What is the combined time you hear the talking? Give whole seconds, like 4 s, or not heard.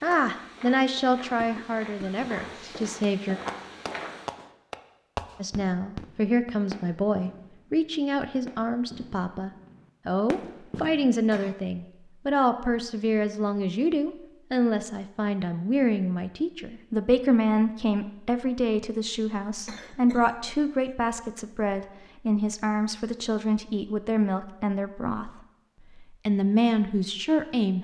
26 s.